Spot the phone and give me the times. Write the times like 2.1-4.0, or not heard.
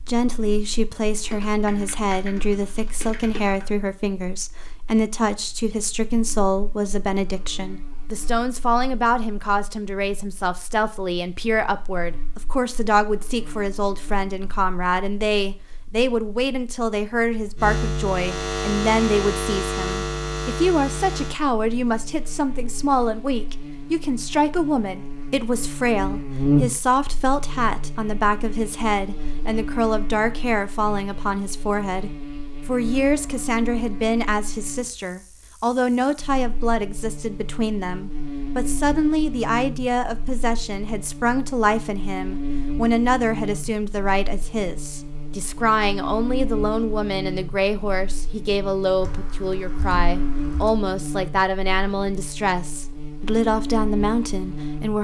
not heard.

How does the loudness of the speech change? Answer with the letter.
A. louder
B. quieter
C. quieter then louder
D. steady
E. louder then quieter
D.